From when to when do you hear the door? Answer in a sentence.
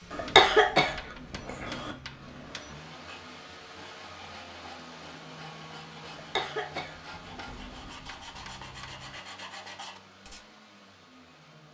The door can't be heard in this clip.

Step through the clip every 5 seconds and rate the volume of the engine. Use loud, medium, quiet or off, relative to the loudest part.
loud, loud, medium.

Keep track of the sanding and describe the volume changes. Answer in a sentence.
The loudness of the sanding goes up.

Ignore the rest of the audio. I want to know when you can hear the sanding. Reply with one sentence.
The sanding can be heard from 2.9 to 10.4 s.